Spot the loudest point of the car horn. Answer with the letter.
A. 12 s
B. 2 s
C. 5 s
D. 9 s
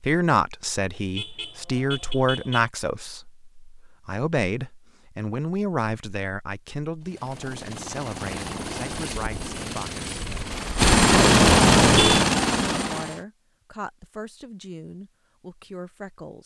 A.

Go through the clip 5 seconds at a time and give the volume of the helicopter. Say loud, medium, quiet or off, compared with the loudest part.
off, quiet, loud, off.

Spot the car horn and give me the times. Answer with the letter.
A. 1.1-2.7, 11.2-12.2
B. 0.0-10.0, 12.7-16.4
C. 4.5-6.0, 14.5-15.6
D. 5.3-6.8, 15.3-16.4
A.